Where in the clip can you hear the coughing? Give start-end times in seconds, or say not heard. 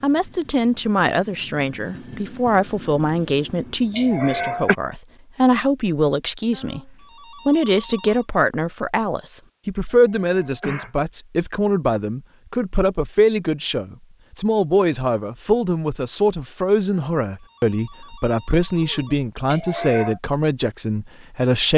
4.0-4.8, 9.9-10.9, 19.4-20.2.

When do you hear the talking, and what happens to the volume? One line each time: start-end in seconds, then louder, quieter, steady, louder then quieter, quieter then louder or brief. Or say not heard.
0.0-21.7 steady.